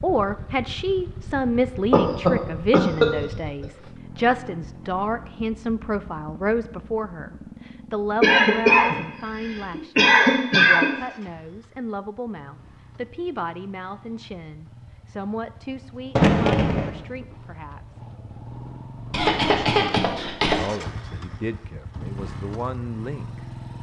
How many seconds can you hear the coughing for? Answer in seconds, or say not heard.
6 s.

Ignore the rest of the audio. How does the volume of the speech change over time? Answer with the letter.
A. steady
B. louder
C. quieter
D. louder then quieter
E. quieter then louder
C.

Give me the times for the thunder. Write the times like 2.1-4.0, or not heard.
16.1-16.9.